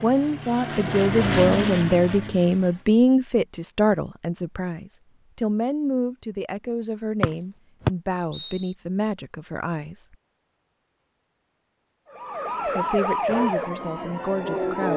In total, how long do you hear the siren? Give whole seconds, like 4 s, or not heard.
3 s.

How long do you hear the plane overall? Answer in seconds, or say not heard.
3 s.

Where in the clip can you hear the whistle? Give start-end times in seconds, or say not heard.
7.2-8.7.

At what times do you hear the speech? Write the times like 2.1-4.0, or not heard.
0.0-10.2, 12.7-14.9.